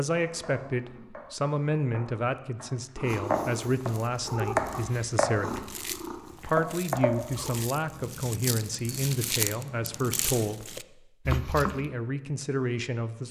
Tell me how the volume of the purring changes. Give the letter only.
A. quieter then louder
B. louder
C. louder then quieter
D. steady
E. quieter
C.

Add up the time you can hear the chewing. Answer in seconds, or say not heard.
8 s.